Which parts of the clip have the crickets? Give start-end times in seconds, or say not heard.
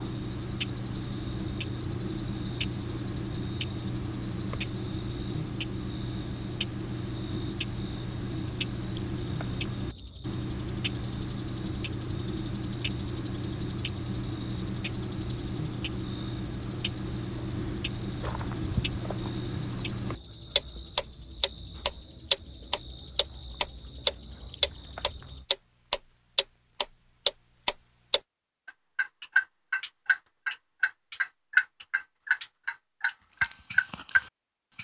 0.0-25.4.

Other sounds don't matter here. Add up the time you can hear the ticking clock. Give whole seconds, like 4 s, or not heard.
35 s.